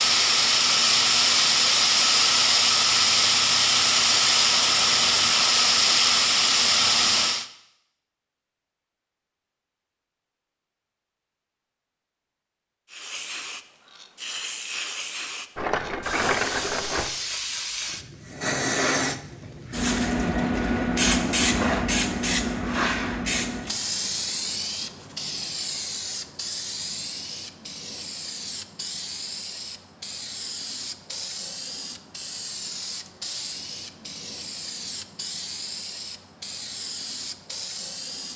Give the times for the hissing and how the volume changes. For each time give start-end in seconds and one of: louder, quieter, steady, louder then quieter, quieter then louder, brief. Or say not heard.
0.0-7.5 steady
12.8-38.3 louder then quieter.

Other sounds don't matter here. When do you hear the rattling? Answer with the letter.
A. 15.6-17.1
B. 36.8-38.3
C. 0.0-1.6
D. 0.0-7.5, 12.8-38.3
A.